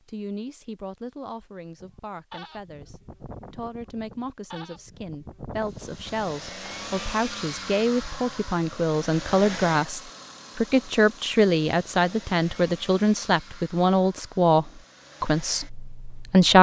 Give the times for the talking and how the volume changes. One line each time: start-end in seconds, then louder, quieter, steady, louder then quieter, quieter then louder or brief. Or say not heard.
0.1-16.5 louder.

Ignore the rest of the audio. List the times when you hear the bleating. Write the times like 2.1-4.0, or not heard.
1.8-7.0.